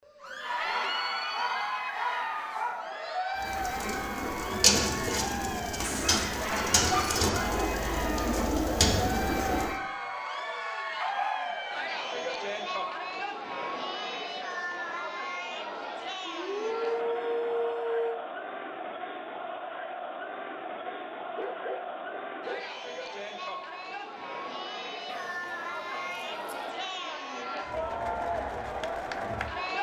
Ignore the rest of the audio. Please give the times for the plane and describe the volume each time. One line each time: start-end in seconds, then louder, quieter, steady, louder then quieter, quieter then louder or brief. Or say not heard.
not heard.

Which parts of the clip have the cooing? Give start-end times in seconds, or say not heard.
3.4-9.8.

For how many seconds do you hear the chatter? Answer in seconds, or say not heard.
30 s.